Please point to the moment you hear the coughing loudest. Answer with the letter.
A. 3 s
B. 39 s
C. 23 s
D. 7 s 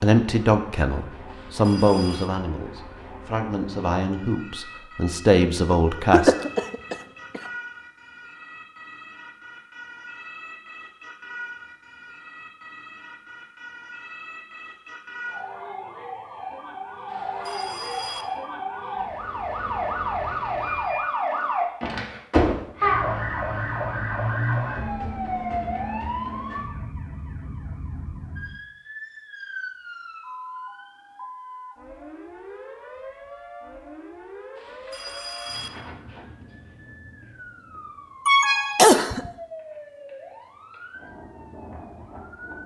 B.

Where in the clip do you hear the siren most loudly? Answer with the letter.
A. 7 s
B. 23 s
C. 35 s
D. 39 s
B.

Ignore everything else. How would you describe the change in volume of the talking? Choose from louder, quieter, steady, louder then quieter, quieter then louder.
quieter then louder.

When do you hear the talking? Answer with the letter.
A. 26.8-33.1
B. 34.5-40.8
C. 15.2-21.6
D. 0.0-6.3
D.